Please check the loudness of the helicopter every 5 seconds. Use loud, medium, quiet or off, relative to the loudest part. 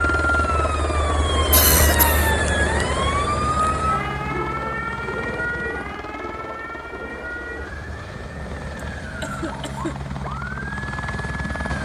loud, medium, loud.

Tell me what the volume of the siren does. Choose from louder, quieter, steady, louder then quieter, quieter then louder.
quieter.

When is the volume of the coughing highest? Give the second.
2 s.